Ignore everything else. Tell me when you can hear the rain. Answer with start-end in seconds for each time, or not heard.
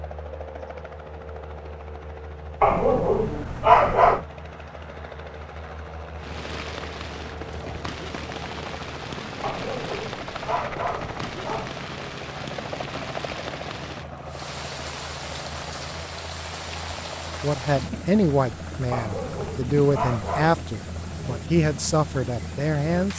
6.2-23.1.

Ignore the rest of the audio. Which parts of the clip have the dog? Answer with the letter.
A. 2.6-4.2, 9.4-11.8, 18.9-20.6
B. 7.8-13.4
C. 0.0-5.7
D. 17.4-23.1
A.